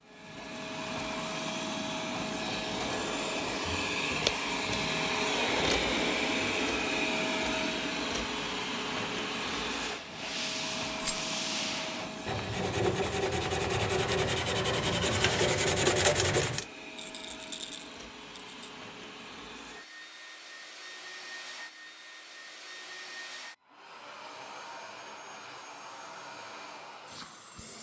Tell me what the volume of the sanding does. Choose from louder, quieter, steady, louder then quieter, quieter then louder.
louder.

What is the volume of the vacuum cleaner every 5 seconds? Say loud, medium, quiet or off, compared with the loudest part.
loud, loud, medium, quiet, quiet, quiet.